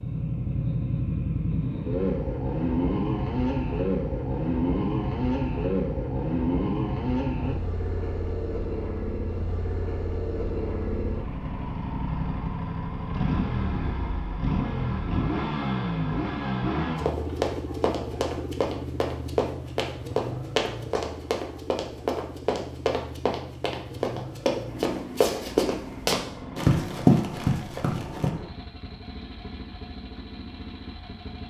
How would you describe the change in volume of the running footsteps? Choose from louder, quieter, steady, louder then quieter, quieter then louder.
louder.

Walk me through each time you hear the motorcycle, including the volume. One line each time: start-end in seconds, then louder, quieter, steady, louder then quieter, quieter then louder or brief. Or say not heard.
0.0-31.4 quieter.